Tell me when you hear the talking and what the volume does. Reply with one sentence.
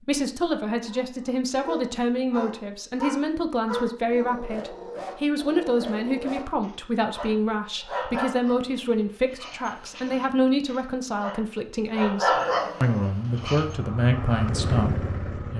The talking can be heard from 0.0 to 15.5 s, at a steady volume.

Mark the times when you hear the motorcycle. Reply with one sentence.
The motorcycle can be heard from 13.2 to 15.5 s.